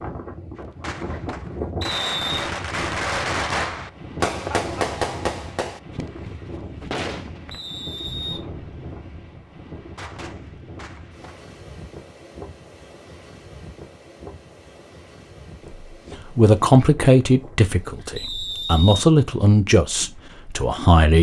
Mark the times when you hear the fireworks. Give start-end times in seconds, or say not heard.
0.6-11.5.